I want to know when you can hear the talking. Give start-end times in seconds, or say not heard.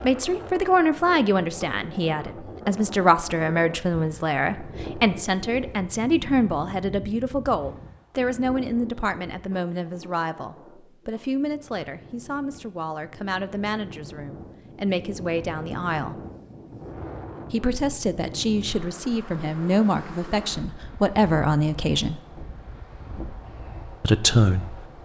0.0-16.1, 17.5-22.2, 24.0-24.8.